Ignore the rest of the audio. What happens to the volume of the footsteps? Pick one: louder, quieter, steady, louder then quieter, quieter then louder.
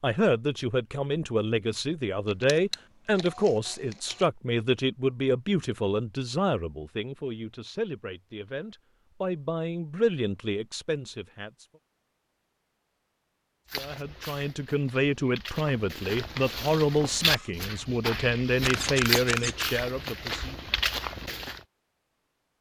louder.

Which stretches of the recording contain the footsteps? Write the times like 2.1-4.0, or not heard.
13.7-21.6.